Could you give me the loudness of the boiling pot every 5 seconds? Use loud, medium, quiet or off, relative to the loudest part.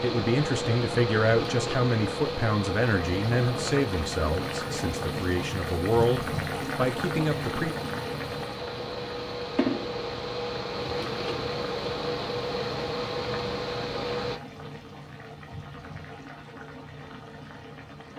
loud, loud, medium, medium.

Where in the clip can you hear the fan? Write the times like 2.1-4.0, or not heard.
0.0-14.4.